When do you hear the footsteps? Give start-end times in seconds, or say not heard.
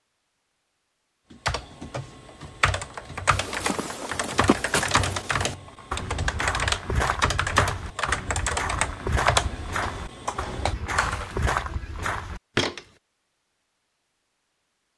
3.3-12.8.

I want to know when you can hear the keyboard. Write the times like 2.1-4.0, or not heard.
1.3-11.5.